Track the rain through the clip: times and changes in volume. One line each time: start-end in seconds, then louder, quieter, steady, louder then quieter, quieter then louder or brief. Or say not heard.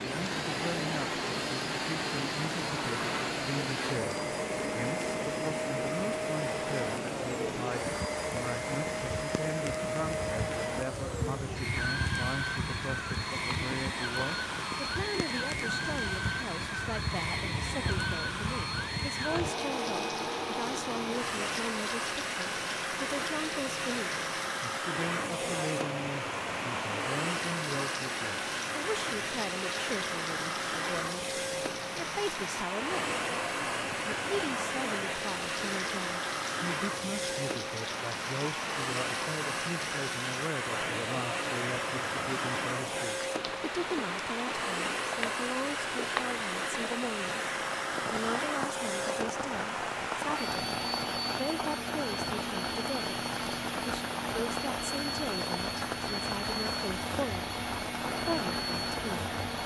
0.0-59.6 steady.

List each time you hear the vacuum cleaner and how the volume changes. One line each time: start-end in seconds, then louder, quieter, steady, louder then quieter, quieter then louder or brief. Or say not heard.
0.0-59.6 steady.